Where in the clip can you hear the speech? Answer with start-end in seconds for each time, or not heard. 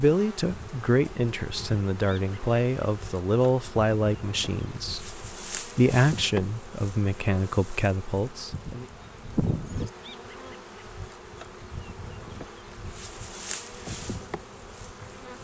0.0-8.8.